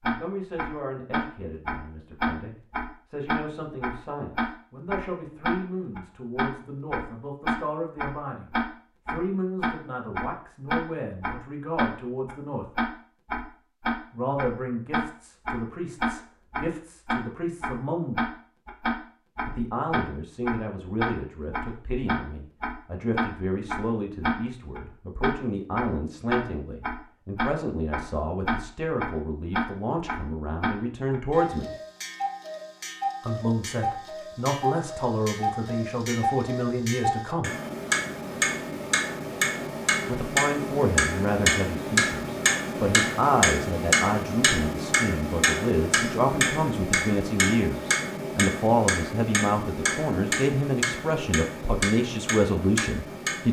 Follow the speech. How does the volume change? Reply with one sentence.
The loudness of the speech goes up.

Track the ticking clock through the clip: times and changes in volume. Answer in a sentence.
The ticking clock can be heard from 0.0 to 53.4 s, at a steady volume.